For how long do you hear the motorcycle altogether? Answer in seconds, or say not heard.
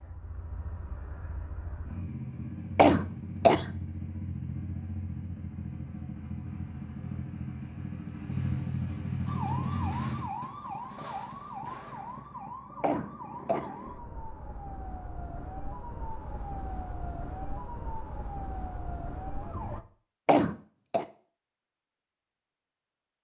10 s.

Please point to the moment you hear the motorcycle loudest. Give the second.
9 s.